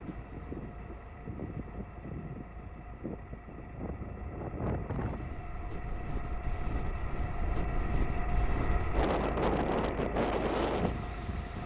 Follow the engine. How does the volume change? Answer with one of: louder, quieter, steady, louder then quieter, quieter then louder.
louder.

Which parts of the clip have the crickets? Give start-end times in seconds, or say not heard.
not heard.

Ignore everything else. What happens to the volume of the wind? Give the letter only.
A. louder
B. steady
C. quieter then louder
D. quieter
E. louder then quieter
A.